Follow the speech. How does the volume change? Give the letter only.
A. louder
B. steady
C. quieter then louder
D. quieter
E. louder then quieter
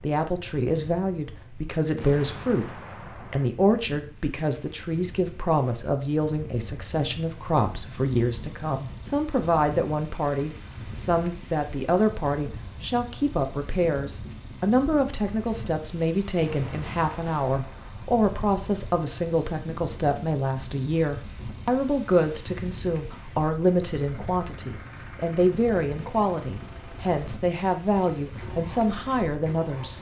B.